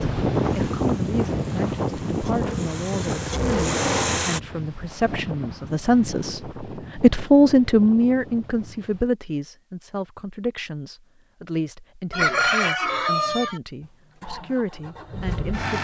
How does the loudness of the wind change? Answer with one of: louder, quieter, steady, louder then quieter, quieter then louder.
quieter.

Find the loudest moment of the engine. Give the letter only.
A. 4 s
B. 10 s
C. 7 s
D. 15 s
A.